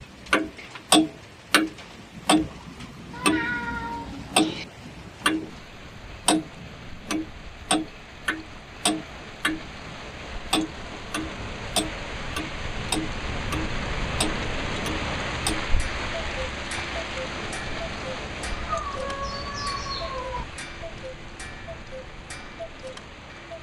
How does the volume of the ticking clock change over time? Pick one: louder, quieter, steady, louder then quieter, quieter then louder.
quieter.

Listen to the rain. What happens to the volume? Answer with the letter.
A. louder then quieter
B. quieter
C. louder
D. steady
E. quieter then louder
A.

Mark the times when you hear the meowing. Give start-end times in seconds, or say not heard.
3.1-4.7, 18.4-20.4.